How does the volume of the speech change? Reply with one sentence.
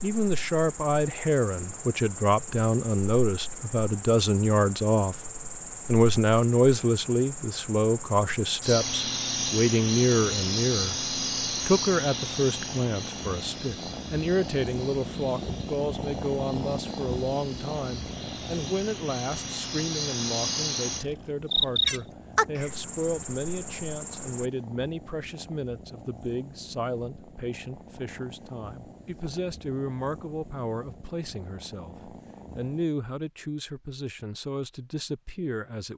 The loudness of the speech goes down.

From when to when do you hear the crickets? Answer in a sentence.
The crickets can be heard from 0.0 to 24.5 s.